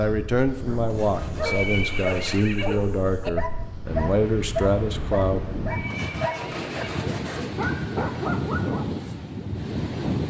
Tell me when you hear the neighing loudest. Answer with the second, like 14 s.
2 s.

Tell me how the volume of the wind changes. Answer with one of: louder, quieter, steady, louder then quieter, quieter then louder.
louder.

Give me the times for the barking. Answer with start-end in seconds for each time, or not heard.
0.6-8.8.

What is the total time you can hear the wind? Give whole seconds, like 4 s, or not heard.
10 s.